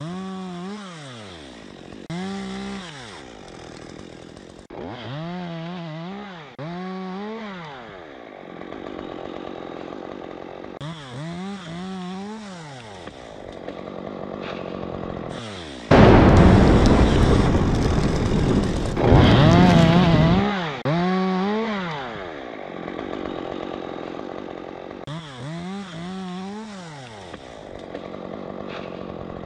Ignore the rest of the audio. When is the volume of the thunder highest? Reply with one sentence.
The volume of the thunder peaks at 16 seconds.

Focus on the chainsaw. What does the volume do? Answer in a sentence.
The loudness of the chainsaw goes up, then down.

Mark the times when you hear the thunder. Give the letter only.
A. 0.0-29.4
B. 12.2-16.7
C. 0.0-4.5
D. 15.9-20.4
D.